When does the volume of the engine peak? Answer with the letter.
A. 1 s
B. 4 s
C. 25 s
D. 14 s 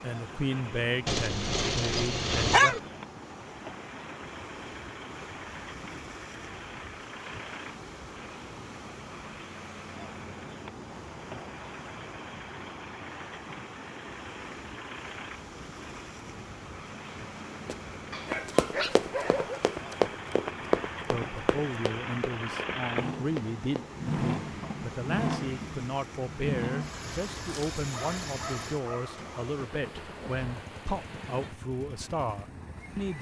C.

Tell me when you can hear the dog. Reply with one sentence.
The dog can be heard from 1.1 to 2.8 s, from 18.1 to 19.6 s and from 27.4 to 29.4 s.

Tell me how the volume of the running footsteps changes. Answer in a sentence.
The volume of the running footsteps goes down.